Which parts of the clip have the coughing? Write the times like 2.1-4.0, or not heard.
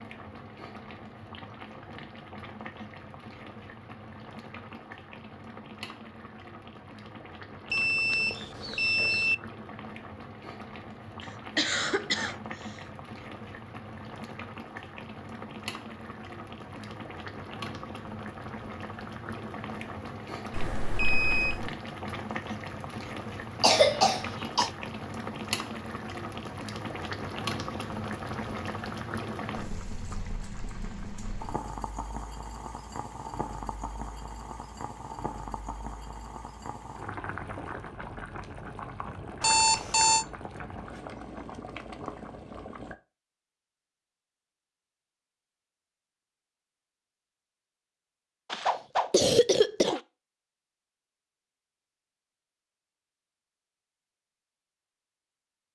11.2-12.8, 23.6-24.7, 48.5-50.0.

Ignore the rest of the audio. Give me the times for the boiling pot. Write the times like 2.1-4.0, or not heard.
0.0-43.0.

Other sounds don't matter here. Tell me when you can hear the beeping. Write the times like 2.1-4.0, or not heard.
7.7-9.3, 20.5-21.7, 39.4-40.2.